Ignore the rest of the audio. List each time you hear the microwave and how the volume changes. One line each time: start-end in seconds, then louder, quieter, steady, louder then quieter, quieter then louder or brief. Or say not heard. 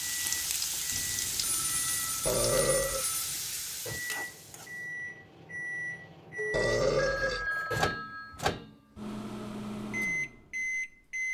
0.0-11.2 louder.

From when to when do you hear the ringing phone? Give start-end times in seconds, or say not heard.
0.9-3.4, 6.3-8.6.